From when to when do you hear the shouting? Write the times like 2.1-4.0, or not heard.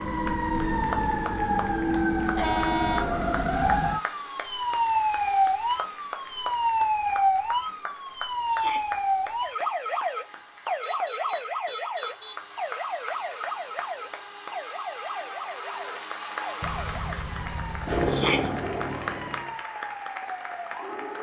8.4-8.9, 18.1-18.5.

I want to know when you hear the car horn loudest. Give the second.
3 s.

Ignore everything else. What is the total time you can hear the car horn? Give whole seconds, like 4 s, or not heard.
4 s.